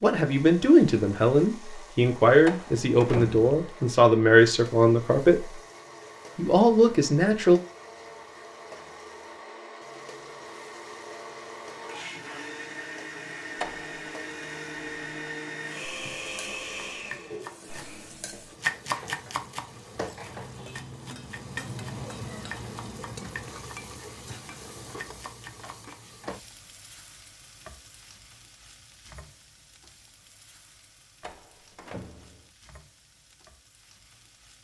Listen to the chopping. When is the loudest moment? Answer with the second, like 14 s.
19 s.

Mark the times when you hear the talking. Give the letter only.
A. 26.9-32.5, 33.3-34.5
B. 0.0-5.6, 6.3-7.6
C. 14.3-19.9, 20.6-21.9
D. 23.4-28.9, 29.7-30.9
B.